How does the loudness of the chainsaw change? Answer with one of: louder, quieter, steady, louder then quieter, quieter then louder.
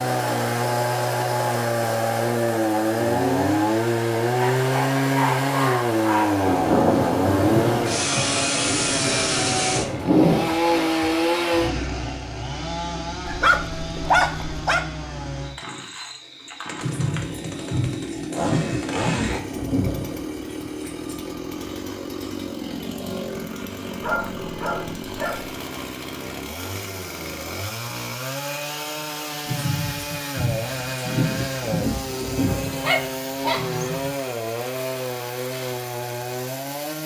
quieter.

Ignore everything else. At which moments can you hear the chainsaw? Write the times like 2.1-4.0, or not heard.
0.0-37.0.